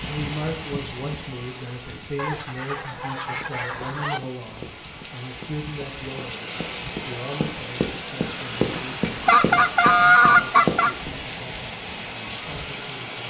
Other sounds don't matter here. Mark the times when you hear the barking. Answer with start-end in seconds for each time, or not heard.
not heard.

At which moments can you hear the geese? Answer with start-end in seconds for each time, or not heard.
2.1-4.2, 8.2-10.9.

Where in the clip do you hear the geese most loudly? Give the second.
10 s.